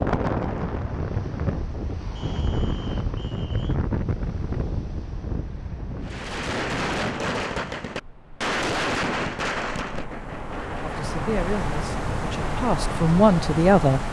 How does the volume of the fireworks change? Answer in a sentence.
The loudness of the fireworks goes down.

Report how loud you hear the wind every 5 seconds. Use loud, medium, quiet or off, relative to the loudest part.
loud, medium, loud.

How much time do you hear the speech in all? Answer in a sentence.
The speech can be heard for 3 seconds in total.